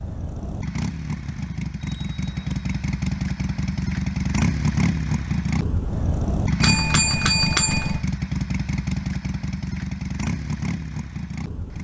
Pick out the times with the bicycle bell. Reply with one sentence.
You can hear the bicycle bell from 1.8 to 2.6 s and from 6.6 to 8.1 s.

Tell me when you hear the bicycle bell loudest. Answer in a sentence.
The volume of the bicycle bell peaks at 7 seconds.